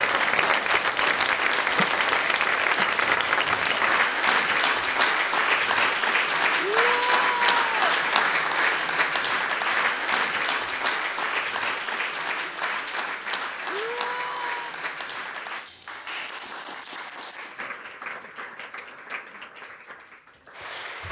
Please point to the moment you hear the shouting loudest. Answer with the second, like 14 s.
7 s.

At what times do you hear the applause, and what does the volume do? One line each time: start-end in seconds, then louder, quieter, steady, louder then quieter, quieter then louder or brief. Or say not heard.
0.0-21.0 quieter.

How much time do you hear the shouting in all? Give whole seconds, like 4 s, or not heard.
2 s.